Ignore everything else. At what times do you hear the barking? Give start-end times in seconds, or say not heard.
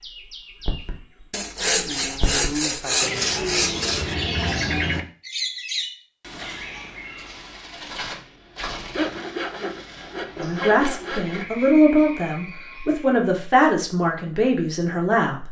not heard.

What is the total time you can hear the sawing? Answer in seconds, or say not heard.
5 s.